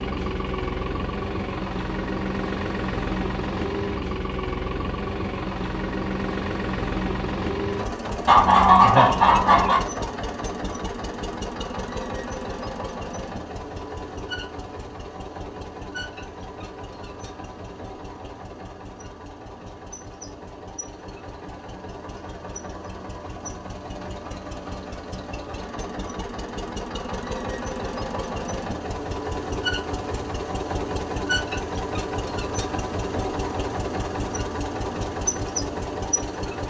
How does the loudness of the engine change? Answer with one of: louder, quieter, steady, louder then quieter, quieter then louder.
quieter then louder.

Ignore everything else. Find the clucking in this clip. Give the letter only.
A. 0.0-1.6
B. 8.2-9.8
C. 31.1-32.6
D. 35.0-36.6
B.